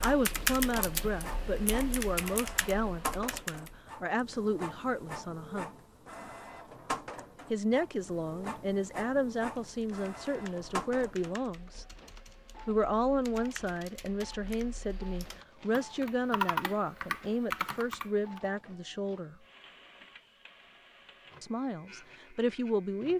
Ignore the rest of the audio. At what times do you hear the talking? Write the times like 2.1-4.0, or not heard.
0.0-5.7, 7.5-11.8, 12.7-19.4, 21.4-23.1.